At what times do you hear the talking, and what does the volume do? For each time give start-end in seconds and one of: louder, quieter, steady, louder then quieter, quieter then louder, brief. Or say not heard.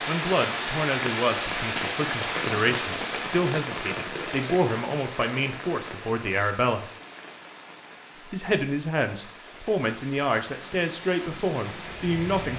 0.1-6.9 steady
8.2-12.5 steady.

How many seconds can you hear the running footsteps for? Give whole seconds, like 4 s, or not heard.
not heard.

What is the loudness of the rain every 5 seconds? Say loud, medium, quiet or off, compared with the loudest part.
loud, quiet, medium.